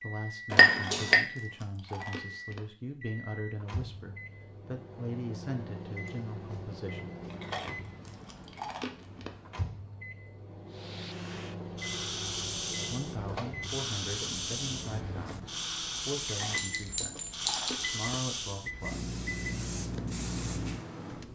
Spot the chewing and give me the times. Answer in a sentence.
The chewing can be heard from 0.7 to 2.6 s, from 7.3 to 9.3 s and from 16.2 to 18.1 s.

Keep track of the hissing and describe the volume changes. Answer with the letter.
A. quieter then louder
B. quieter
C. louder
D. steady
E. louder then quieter
D.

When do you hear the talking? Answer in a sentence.
You can hear the talking from 0.0 to 7.1 s and from 12.9 to 19.1 s.